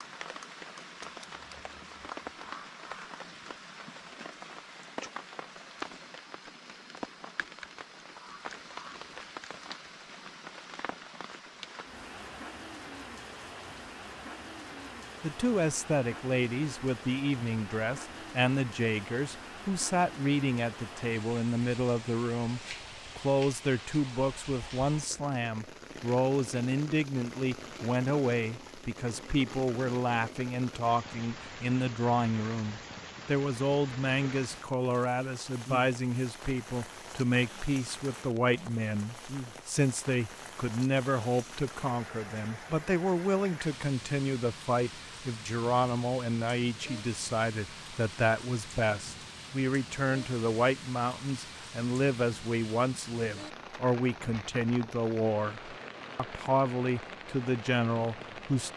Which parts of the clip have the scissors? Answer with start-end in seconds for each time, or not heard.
not heard.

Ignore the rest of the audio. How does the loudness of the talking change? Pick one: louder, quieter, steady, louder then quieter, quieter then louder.
steady.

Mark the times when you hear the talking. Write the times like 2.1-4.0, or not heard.
15.2-58.7.